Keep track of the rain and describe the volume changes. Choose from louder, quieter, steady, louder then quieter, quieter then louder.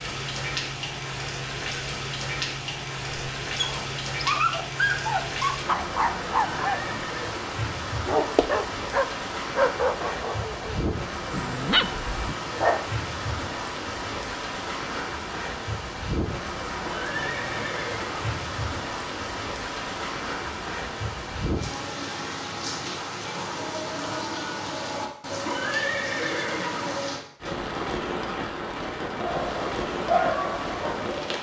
steady.